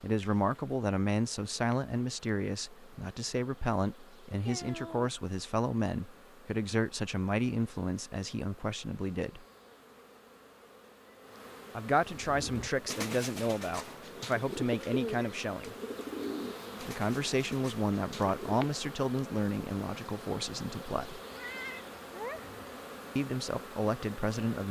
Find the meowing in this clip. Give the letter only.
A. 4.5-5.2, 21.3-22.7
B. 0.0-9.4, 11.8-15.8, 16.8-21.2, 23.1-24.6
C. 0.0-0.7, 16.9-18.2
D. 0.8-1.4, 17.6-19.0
A.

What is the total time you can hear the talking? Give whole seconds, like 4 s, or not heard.
19 s.